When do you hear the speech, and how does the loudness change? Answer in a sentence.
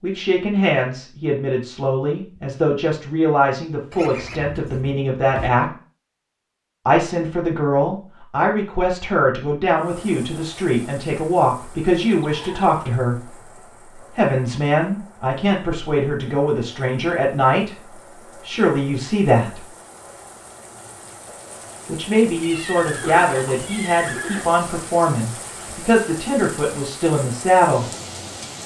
You can hear the speech from 0.0 to 5.7 s, at a steady volume; from 6.8 to 19.7 s, at a steady volume; and from 21.9 to 27.9 s, at a steady volume.